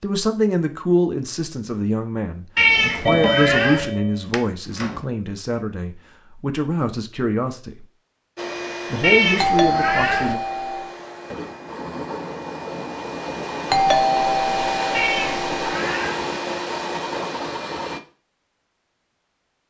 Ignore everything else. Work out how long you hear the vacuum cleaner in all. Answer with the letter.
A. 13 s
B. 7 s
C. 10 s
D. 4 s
C.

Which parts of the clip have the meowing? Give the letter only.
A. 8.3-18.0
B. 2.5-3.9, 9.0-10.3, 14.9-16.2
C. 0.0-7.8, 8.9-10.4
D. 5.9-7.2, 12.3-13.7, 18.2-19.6
B.